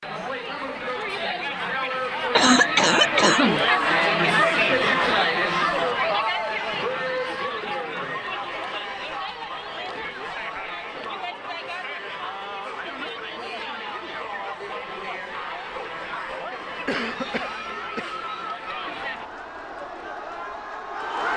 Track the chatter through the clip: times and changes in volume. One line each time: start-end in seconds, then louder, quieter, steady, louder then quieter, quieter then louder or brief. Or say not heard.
0.0-21.3 quieter.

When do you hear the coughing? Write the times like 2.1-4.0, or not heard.
2.3-3.6, 16.9-18.1.